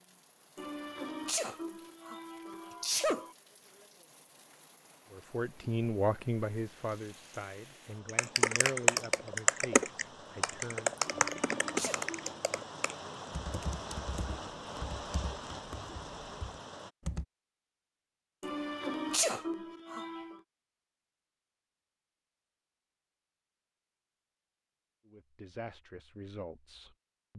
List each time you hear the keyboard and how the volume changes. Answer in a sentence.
You can hear the keyboard from 8.1 to 17.2 s, getting quieter.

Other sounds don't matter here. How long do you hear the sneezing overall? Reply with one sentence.
You can hear the sneezing for 6 seconds altogether.